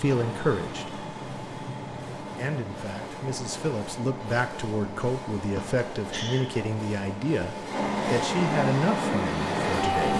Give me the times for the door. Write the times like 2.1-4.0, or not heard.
not heard.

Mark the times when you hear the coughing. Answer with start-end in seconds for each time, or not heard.
5.5-6.5.